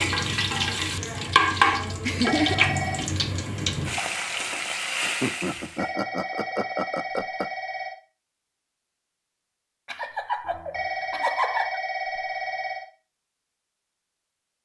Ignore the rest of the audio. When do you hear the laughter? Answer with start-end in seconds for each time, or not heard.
1.4-2.6, 5.0-7.5, 9.8-11.8.